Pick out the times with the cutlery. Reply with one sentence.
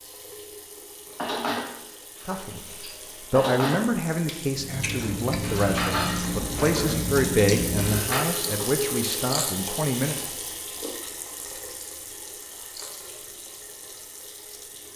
The cutlery can be heard from 1.1 to 8.2 s.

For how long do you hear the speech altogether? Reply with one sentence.
You can hear the speech for 8 seconds altogether.